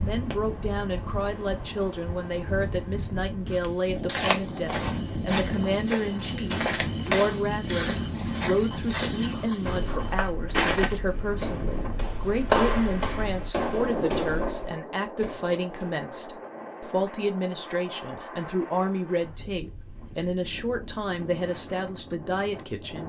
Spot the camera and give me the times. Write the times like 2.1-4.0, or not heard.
4.2-4.9.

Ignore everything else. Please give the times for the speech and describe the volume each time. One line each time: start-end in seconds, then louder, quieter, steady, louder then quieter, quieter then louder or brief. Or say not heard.
0.0-23.0 steady.